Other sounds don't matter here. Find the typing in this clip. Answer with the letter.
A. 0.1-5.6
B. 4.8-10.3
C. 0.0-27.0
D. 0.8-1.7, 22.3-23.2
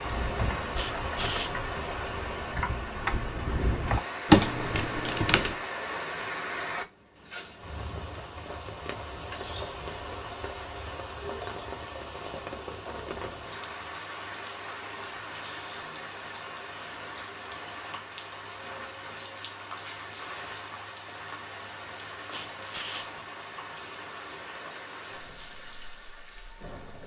A.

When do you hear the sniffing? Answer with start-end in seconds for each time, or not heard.
0.8-1.7, 22.3-23.2.